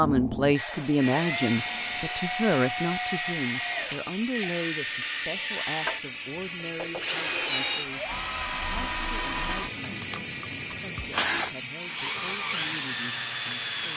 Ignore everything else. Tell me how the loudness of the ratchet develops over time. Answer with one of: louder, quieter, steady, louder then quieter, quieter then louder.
steady.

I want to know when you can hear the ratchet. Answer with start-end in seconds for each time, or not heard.
0.8-12.7.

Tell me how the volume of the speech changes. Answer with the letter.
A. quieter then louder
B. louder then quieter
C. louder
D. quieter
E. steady
D.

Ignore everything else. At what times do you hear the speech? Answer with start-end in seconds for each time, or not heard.
0.0-13.9.